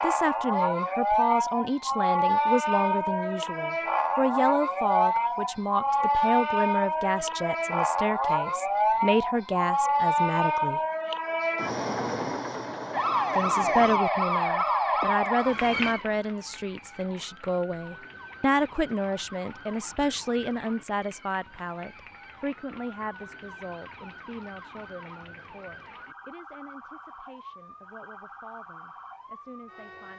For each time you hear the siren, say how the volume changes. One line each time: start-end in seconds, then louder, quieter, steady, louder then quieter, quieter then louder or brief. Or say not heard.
0.0-30.1 quieter.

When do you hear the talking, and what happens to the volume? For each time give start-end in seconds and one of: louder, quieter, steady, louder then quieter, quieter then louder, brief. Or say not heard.
0.0-10.8 steady
13.3-30.1 quieter.